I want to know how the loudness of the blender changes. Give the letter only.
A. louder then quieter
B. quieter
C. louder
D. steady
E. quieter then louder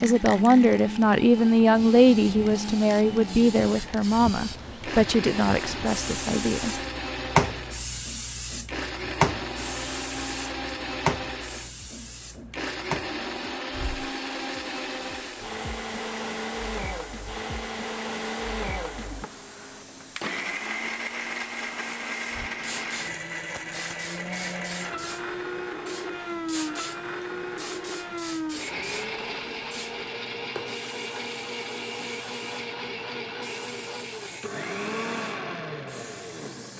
D.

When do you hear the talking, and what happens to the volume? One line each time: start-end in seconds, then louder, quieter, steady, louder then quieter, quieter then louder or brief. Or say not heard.
0.0-6.8 quieter.